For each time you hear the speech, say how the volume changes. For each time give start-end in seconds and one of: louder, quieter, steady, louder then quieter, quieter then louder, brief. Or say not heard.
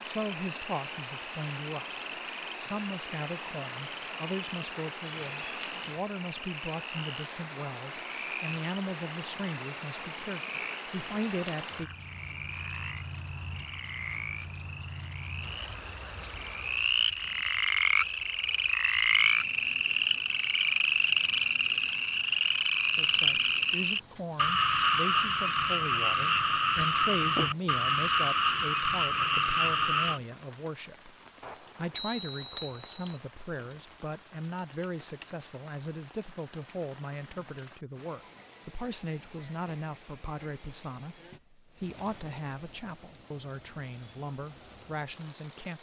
0.0-11.9 steady
22.9-45.7 steady.